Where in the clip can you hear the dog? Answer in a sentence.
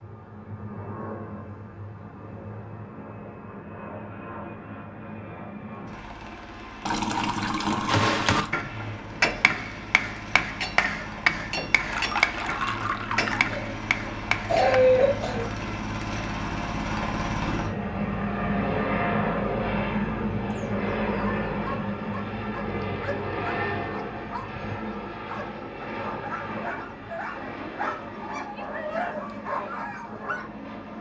The dog can be heard from 21.1 to 30.4 s.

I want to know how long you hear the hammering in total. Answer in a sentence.
You can hear the hammering for 7 seconds altogether.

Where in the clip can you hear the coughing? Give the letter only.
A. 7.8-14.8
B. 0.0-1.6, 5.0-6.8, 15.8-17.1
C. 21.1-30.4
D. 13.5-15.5
D.